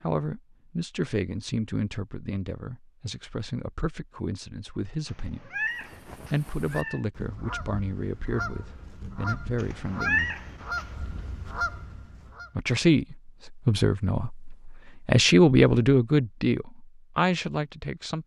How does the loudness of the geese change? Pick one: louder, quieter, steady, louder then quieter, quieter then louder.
louder.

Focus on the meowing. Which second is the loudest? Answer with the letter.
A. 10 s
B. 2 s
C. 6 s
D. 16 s
A.